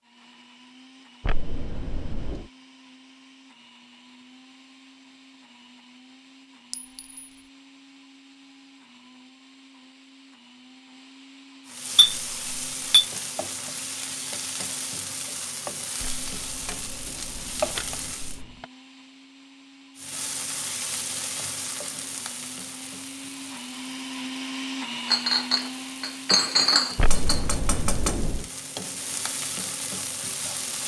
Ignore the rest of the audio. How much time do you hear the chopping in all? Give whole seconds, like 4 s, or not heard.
not heard.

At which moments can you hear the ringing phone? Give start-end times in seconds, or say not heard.
1.2-2.5, 16.0-18.6, 26.9-28.4.